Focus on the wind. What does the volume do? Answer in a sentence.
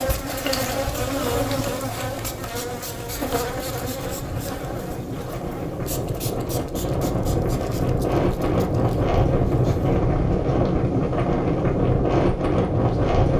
The loudness of the wind goes up.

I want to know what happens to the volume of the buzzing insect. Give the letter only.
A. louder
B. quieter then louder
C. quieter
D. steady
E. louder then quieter
C.